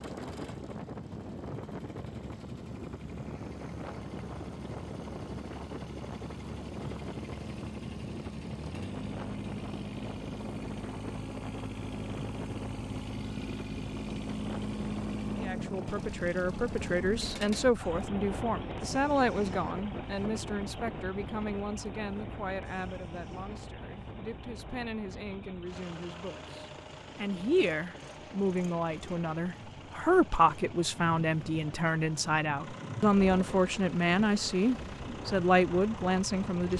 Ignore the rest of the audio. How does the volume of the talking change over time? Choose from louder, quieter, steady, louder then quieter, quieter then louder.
quieter then louder.